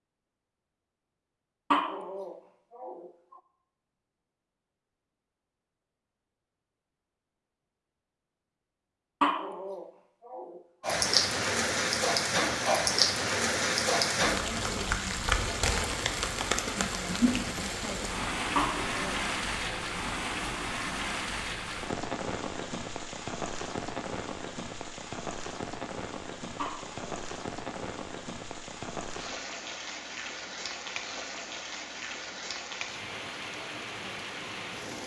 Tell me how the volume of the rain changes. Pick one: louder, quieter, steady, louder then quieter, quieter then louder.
quieter.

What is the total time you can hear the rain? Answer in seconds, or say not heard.
24 s.